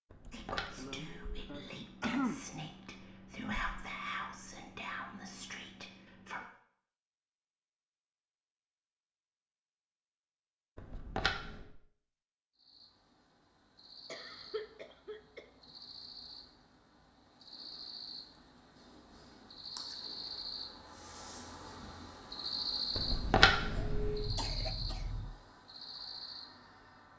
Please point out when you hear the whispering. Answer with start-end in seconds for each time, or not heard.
0.3-6.5.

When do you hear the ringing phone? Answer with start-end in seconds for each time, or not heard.
0.1-1.4, 10.8-11.8, 22.9-24.3.